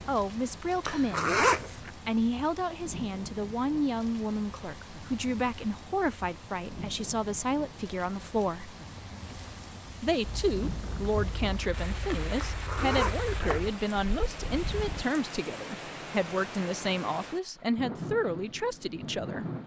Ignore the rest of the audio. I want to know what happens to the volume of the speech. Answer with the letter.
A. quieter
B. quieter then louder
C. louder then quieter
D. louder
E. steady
E.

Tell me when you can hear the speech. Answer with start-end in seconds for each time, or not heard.
0.1-8.7, 10.0-19.4.